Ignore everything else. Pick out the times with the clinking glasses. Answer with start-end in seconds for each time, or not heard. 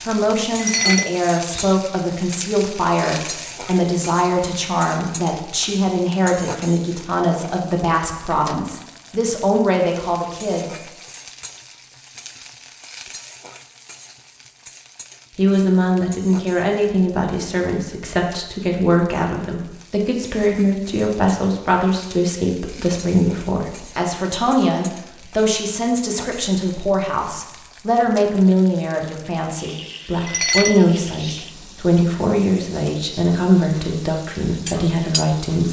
0.6-1.8, 30.2-31.4.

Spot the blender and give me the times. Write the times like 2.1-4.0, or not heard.
not heard.